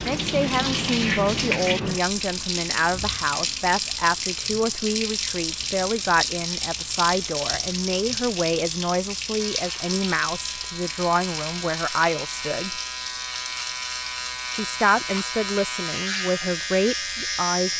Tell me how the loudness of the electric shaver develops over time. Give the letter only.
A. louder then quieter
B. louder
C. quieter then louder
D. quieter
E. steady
B.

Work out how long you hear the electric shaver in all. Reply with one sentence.
The electric shaver can be heard for 8 seconds in total.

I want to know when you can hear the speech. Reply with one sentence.
The speech can be heard from 0.0 to 12.8 s and from 14.5 to 17.7 s.